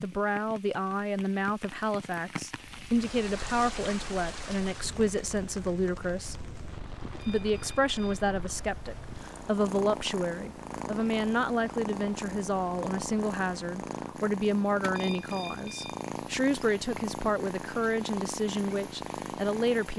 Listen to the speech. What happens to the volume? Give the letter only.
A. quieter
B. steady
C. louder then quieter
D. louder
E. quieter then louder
B.